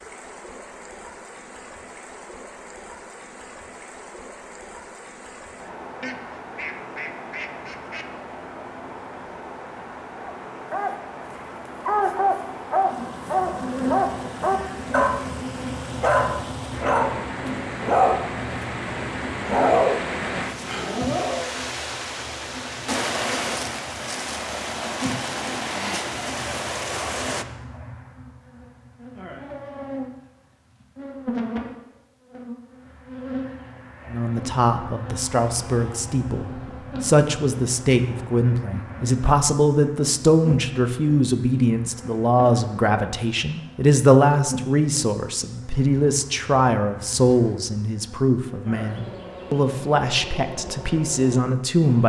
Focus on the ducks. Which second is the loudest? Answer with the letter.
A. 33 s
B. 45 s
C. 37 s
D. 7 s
D.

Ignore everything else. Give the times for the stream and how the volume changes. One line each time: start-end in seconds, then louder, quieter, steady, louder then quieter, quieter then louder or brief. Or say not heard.
0.0-27.4 louder.